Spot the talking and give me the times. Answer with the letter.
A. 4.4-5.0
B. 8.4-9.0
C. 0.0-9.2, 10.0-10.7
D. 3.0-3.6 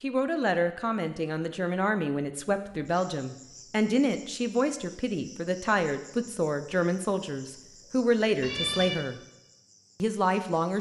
C.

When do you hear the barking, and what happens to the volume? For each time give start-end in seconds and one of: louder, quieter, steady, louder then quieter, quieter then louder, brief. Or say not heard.
not heard.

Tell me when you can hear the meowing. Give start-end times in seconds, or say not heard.
8.4-9.0.